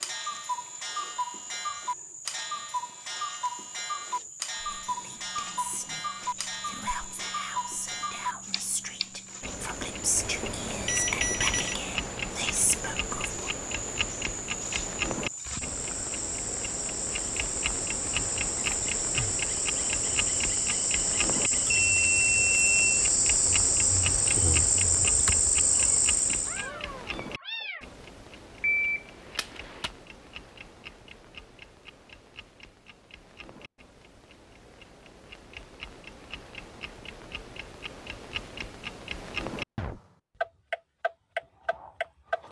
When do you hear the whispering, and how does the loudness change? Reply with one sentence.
You can hear the whispering from 4.6 to 13.5 s, getting louder.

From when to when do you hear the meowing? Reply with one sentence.
The meowing can be heard from 25.8 to 27.9 s.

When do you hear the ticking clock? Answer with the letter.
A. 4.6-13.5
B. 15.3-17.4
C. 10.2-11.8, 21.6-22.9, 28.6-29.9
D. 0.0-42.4
D.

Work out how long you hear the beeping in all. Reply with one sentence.
You can hear the beeping for 4 seconds altogether.